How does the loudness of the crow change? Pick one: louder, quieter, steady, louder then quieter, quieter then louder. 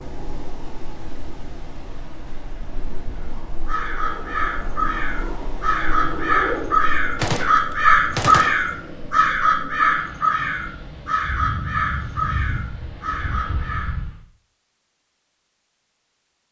louder then quieter.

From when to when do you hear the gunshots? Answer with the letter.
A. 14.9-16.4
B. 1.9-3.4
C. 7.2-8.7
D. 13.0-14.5
C.